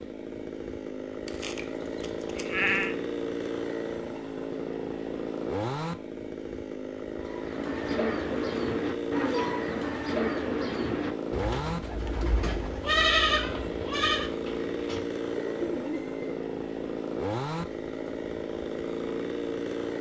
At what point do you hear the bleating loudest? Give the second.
13 s.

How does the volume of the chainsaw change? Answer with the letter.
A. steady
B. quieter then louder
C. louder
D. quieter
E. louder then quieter
A.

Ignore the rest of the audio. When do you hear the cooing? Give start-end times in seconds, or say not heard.
7.2-16.3.